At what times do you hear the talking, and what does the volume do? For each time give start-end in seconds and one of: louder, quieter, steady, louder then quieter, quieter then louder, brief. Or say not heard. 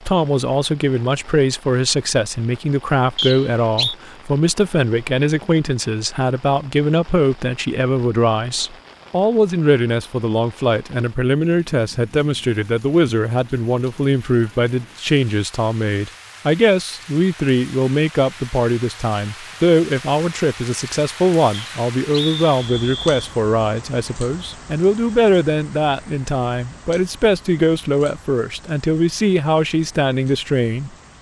0.1-30.9 steady.